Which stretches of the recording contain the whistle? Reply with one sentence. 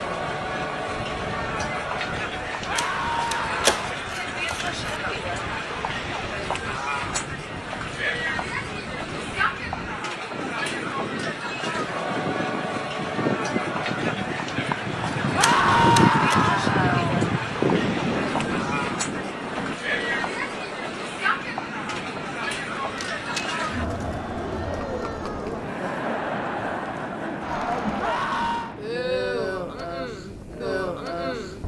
The whistle can't be heard in this clip.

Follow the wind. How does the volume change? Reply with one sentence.
The loudness of the wind goes up, then down.